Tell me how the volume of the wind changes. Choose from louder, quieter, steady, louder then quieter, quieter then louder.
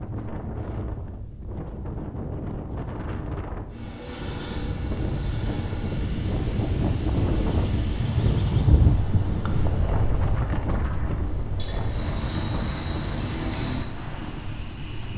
louder then quieter.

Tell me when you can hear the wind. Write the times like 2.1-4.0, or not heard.
0.0-15.1.